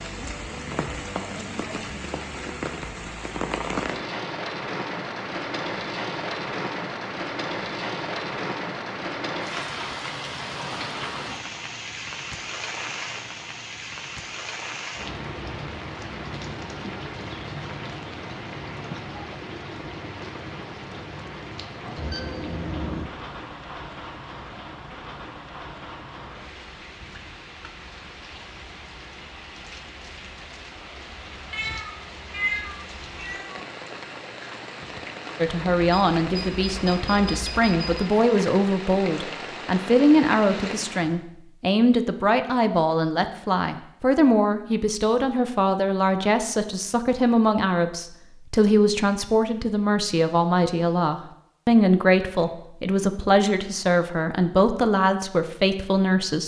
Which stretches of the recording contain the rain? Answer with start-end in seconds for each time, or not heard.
0.0-41.2.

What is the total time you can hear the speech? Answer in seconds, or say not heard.
21 s.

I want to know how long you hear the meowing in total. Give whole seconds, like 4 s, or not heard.
2 s.